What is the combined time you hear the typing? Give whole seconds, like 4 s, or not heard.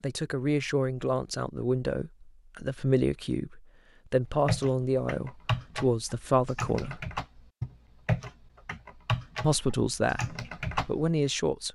7 s.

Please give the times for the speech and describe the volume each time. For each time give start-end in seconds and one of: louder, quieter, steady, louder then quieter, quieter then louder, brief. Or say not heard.
0.0-7.0 steady
9.4-11.7 brief.